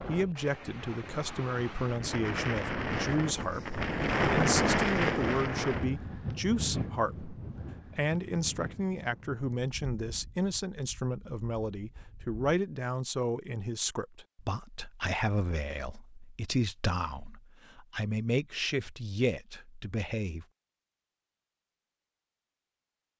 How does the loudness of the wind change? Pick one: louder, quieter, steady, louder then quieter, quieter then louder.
louder then quieter.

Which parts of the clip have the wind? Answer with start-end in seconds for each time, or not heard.
0.0-12.3.